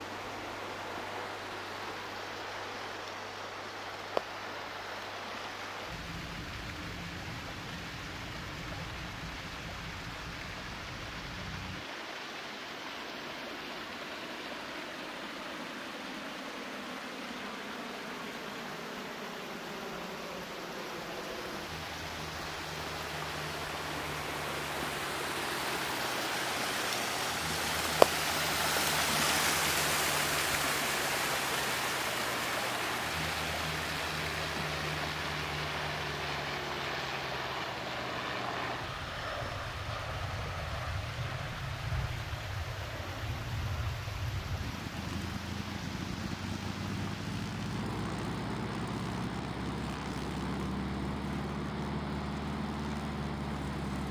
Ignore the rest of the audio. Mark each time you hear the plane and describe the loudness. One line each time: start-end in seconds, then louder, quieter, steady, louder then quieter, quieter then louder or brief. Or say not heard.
0.0-54.0 louder.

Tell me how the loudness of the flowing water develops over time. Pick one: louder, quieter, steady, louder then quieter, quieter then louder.
louder then quieter.